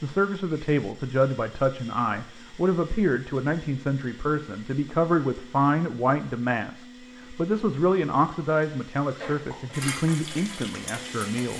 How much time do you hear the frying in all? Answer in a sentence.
You can hear the frying for 2 seconds altogether.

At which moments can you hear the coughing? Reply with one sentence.
You can hear the coughing from 9.2 to 9.8 s.